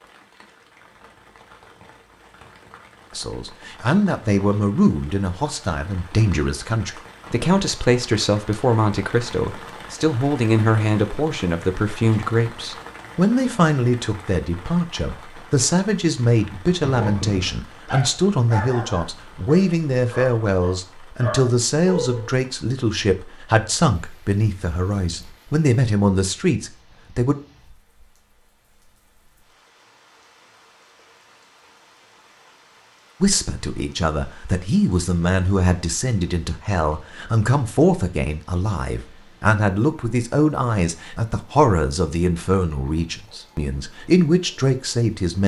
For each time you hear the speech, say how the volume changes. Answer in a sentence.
You can hear the speech from 3.1 to 27.4 s, at a steady volume; and from 33.2 to 45.4 s, at a steady volume.